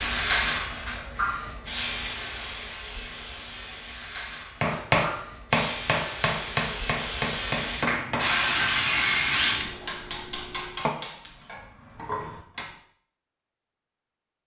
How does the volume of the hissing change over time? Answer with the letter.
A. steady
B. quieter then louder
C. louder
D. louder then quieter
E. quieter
B.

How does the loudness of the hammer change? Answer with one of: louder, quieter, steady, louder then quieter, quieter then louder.
quieter.